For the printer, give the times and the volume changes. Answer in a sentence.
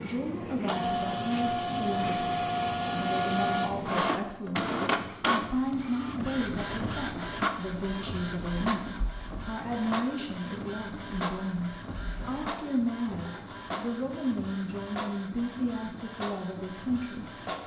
The printer can be heard from 0.0 to 17.6 s, getting quieter.